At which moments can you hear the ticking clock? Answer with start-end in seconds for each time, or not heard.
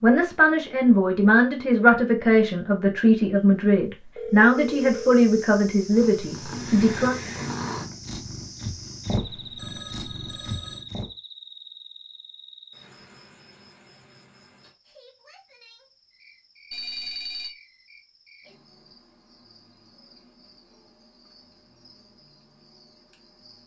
not heard.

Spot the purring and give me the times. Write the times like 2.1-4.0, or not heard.
5.9-11.1.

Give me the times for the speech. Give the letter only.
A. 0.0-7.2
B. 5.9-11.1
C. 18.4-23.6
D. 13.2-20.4
A.